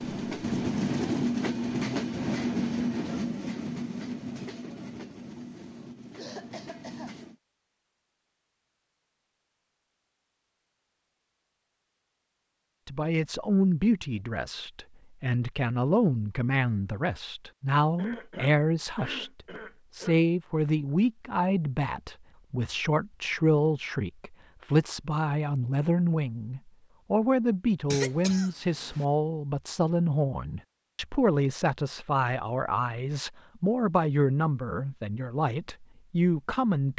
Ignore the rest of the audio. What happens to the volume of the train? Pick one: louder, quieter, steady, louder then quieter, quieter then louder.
quieter.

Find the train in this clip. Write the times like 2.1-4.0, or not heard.
0.0-7.3.